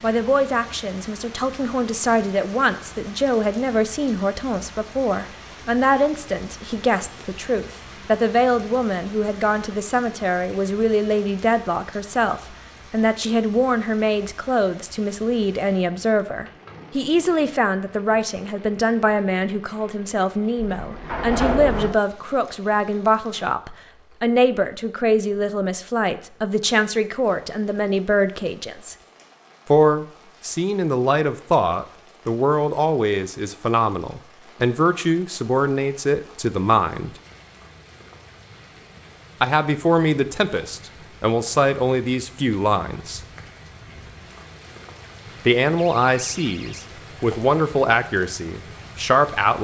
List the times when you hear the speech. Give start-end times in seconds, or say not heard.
0.0-28.9, 29.6-37.1, 39.4-43.2, 45.5-49.5.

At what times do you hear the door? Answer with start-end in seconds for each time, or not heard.
20.7-21.9, 45.8-46.9.